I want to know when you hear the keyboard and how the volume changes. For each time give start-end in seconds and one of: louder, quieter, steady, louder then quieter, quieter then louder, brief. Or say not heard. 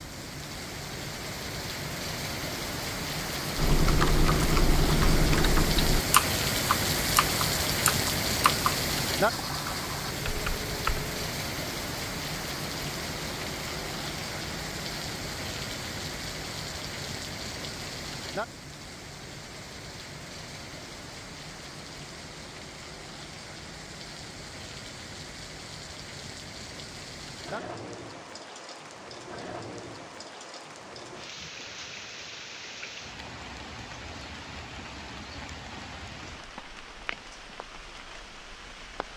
3.5-11.2 quieter.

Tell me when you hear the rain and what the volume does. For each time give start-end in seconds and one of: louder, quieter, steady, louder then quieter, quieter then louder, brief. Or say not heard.
0.0-39.1 quieter.